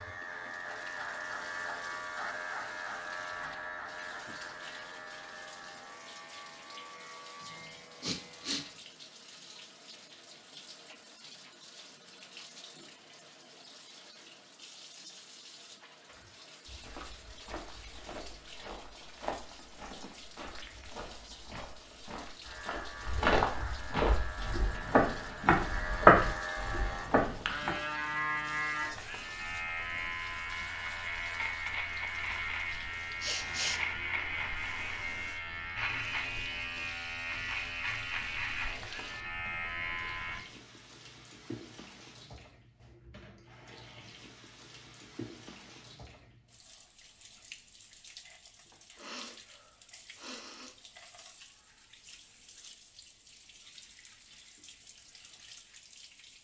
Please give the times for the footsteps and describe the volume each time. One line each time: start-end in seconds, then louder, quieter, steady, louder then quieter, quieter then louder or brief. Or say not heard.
16.1-27.7 louder.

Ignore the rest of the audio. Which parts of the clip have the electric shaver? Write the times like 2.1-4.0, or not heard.
0.0-8.8, 22.4-40.5.